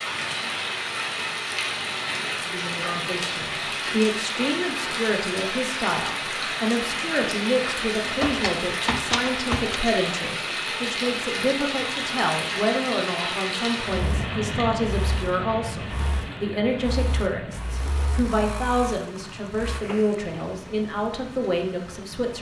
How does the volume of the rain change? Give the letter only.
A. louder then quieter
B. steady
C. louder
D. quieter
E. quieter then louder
D.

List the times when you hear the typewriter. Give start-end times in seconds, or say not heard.
8.0-9.9.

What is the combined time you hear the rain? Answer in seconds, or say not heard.
22 s.